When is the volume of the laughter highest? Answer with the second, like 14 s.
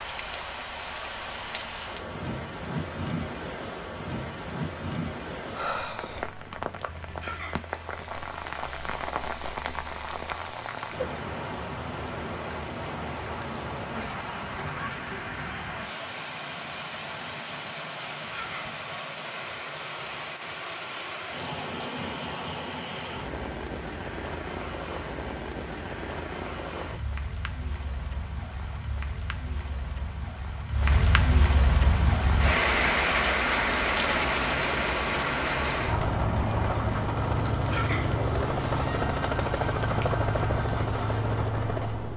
38 s.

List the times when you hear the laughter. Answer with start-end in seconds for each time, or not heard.
7.2-7.7, 18.3-18.8, 37.7-38.2.